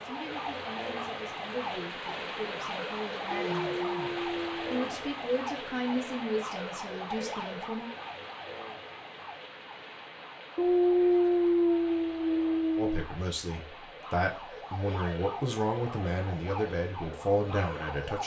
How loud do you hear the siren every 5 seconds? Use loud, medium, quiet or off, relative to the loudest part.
loud, loud, medium, loud.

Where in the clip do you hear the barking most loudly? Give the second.
11 s.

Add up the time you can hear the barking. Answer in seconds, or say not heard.
4 s.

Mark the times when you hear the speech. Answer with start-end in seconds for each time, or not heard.
0.0-7.9, 12.8-18.2.